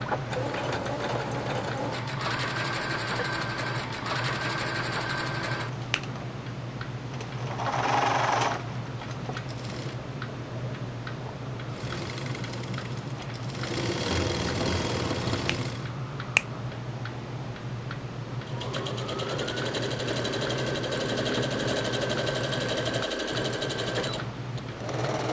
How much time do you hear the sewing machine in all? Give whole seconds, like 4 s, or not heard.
21 s.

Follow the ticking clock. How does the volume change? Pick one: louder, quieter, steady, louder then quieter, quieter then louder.
steady.